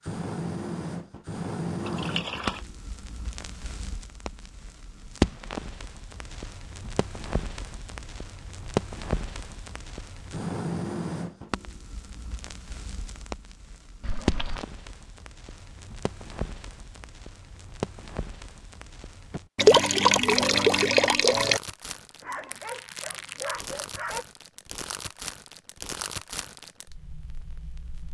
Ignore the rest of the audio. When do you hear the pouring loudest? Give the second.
20 s.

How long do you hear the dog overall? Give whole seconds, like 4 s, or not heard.
2 s.